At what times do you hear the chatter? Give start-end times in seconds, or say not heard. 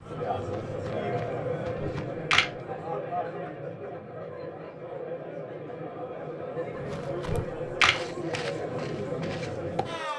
0.0-10.1.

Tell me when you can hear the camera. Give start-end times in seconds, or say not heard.
1.8-2.5, 7.2-8.0.